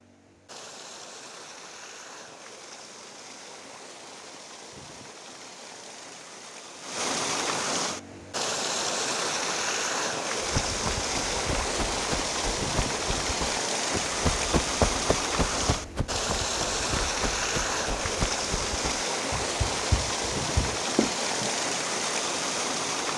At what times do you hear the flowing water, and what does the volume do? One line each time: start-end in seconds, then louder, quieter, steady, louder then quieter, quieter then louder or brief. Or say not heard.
0.0-23.1 louder.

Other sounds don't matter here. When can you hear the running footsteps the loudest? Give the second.
15 s.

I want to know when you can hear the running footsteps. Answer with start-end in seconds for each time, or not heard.
10.4-21.5.